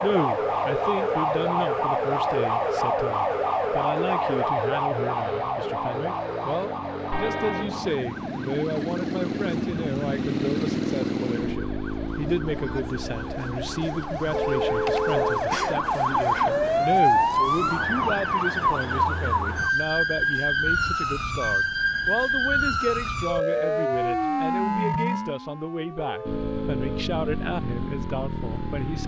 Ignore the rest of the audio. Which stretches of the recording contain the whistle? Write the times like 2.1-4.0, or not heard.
not heard.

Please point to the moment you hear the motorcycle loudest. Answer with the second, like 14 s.
11 s.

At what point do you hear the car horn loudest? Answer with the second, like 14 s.
15 s.